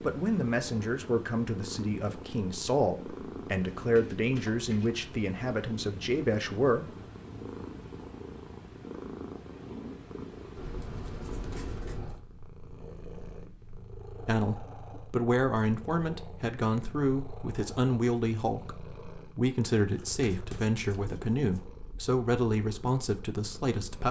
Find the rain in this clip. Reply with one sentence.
The rain can't be heard in this clip.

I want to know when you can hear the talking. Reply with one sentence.
The talking can be heard from 0.0 to 6.8 s and from 14.2 to 24.0 s.